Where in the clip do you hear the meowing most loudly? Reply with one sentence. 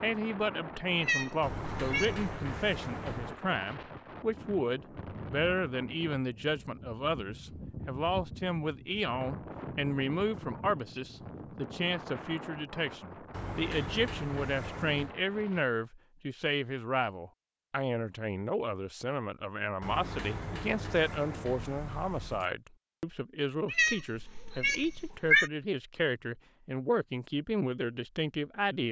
The volume of the meowing peaks at 25 seconds.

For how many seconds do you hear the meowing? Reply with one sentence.
The meowing can be heard for 3 seconds in total.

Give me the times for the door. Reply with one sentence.
You can hear the door from 1.4 to 3.4 s, from 13.3 to 15.2 s and from 19.8 to 22.5 s.